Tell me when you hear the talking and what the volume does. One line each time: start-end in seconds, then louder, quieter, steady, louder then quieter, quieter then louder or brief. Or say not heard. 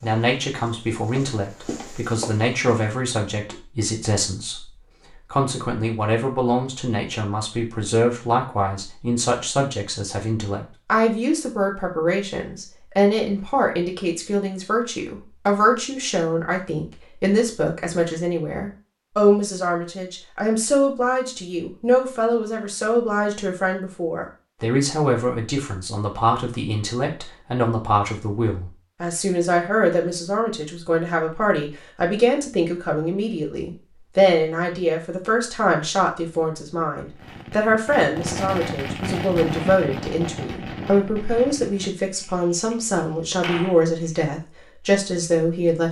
0.0-45.8 steady.